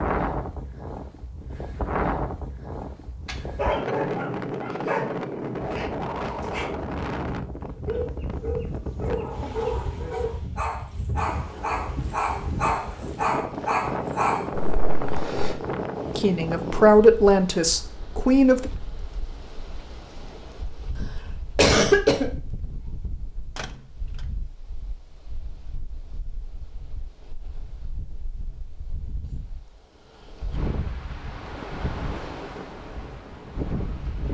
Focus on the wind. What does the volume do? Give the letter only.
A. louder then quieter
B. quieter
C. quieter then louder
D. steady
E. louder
C.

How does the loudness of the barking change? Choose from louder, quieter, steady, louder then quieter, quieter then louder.
quieter then louder.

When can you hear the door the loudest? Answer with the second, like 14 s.
10 s.